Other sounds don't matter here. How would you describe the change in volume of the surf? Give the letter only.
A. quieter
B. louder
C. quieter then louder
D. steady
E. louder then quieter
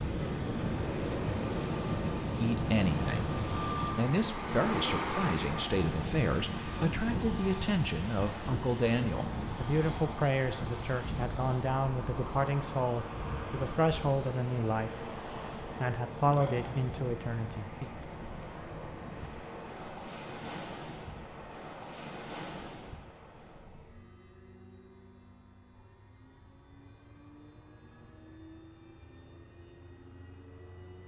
A.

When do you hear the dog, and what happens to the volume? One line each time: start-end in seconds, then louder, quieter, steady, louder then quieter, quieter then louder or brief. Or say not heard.
not heard.